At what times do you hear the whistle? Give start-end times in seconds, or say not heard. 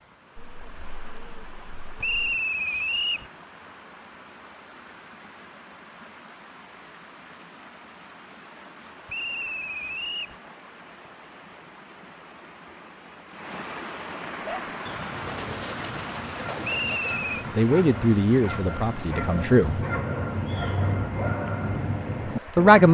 2.0-3.3, 9.1-10.3, 16.6-17.4.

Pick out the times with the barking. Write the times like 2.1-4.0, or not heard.
14.4-22.8.